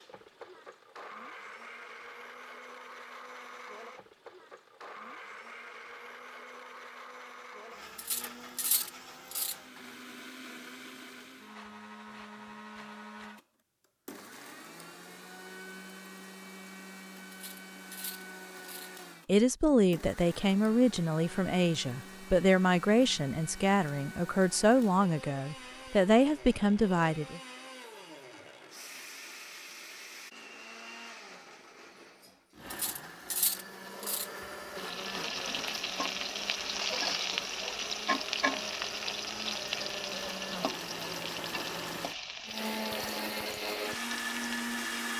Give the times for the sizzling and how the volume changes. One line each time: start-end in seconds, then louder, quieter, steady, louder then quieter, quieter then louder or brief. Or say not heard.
34.8-45.1 quieter.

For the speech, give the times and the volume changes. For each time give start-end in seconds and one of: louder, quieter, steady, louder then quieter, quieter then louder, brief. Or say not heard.
19.2-27.4 steady.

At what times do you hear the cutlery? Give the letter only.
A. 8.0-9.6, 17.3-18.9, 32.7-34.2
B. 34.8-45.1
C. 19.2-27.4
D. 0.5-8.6
A.